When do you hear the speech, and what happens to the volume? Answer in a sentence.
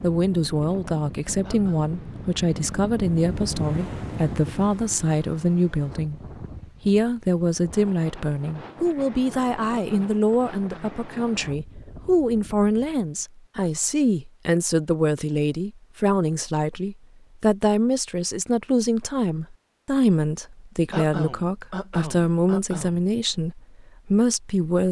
You can hear the speech from 0.0 to 24.8 s, at a steady volume.